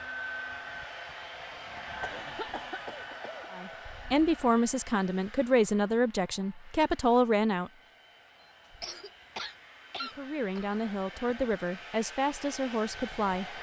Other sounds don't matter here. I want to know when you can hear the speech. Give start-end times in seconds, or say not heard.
3.5-7.7, 10.0-13.5.